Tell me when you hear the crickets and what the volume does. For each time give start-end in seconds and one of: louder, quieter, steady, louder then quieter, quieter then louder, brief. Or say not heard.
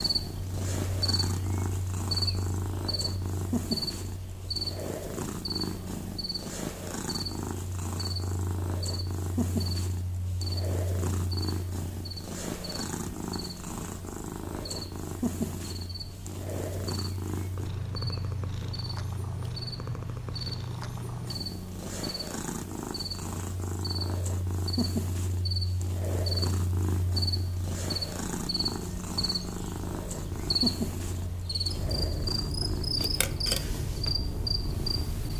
0.0-35.3 quieter then louder.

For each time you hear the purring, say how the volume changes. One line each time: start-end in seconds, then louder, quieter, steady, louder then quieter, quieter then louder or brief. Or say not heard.
0.0-35.3 steady.